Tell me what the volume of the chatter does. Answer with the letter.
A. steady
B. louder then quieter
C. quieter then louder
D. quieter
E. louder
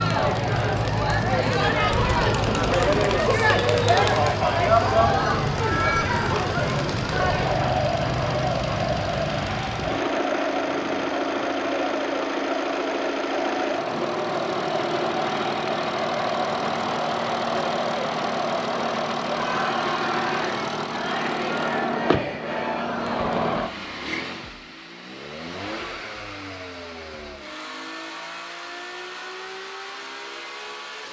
D.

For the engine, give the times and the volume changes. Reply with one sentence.
You can hear the engine from 0.0 to 31.0 s, getting quieter.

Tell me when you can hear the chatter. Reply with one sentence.
The chatter can be heard from 0.0 to 23.5 s.